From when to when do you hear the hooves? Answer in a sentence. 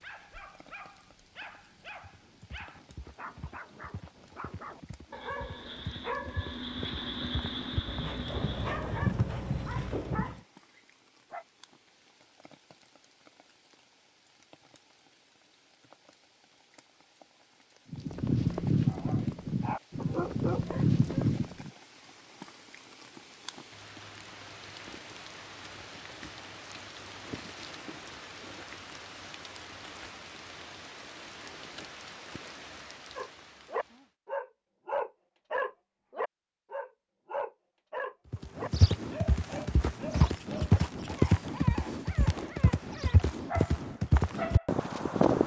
You can hear the hooves from 2.0 to 10.4 s, from 17.9 to 21.7 s and from 38.3 to 45.4 s.